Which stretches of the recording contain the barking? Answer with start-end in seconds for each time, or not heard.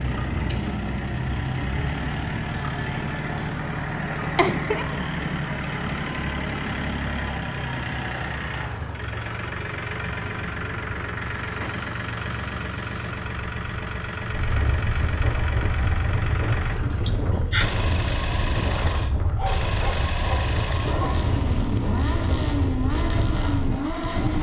19.4-21.2.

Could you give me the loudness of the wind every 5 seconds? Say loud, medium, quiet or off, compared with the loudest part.
off, off, medium, loud, loud.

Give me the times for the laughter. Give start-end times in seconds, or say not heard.
4.3-5.0, 17.1-17.6.